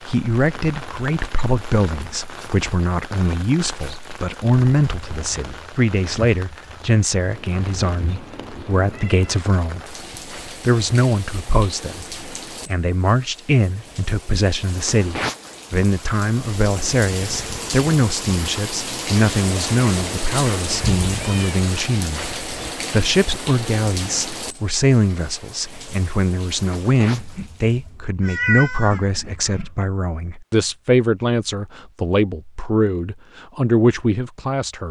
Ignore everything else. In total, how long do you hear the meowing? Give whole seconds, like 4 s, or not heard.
5 s.